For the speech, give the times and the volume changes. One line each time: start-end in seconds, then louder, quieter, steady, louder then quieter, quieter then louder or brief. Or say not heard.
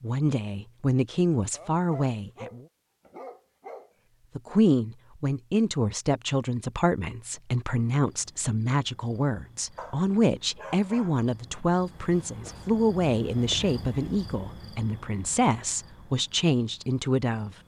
0.0-2.6 brief
4.3-17.6 steady.